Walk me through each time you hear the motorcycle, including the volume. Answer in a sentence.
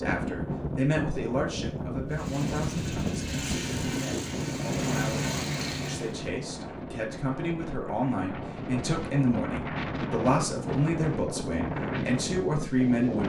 You can hear the motorcycle from 2.1 to 6.2 s, getting louder.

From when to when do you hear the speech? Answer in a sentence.
The speech can be heard from 0.0 to 13.2 s.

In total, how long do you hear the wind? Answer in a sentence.
You can hear the wind for 13 seconds altogether.